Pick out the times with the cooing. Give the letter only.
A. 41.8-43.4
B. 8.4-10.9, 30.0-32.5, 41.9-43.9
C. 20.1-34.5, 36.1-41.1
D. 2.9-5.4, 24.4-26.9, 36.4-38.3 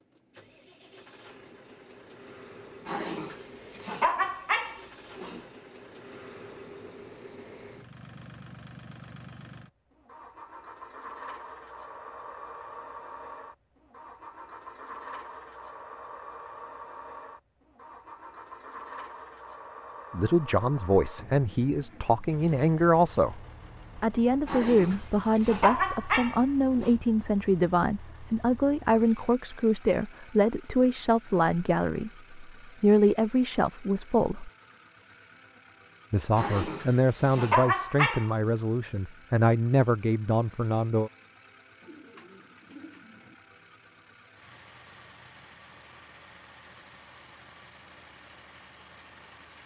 A.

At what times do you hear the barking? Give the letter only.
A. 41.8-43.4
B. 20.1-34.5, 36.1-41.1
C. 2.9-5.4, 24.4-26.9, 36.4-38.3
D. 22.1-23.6
C.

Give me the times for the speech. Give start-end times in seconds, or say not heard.
20.1-34.5, 36.1-41.1.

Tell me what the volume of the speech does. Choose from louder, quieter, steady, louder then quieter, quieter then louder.
steady.